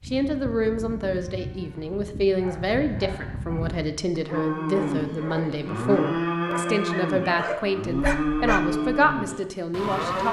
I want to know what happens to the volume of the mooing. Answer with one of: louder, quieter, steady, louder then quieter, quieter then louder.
louder.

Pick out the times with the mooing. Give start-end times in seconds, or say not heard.
0.0-10.2.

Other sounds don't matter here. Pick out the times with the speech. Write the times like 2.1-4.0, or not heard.
0.1-10.2.